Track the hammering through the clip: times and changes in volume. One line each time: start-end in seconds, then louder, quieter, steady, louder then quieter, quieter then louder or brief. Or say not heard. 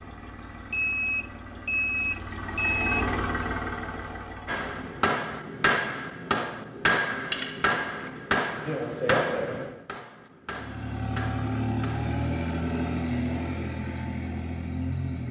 4.5-12.1 quieter.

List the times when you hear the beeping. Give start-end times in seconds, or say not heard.
0.7-3.5.